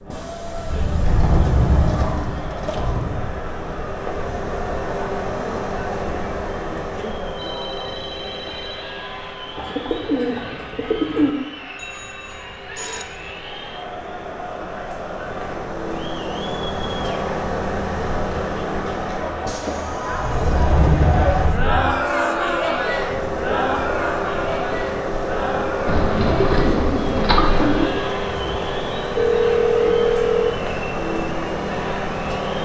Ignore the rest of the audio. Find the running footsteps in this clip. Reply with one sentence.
You can't hear the running footsteps here.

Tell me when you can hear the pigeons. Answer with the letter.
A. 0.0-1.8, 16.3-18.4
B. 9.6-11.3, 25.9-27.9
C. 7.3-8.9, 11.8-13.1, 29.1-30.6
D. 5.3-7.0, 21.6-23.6
B.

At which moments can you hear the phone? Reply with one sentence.
You can hear the phone from 7.3 to 8.9 s, from 11.8 to 13.1 s and from 29.1 to 30.6 s.